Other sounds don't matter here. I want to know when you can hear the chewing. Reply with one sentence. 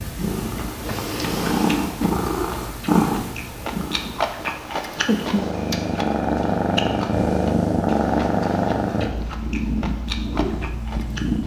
The chewing can be heard from 0.7 to 11.4 s.